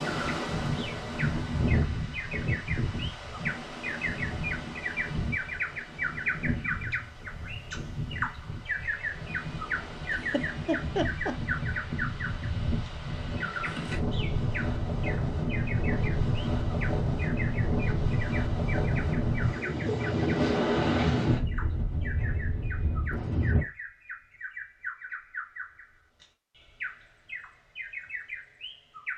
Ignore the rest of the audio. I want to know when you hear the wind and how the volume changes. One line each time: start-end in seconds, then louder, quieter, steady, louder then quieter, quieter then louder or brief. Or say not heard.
0.0-23.6 quieter then louder.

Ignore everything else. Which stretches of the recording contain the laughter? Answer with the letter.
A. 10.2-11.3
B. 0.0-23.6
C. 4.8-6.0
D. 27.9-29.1
A.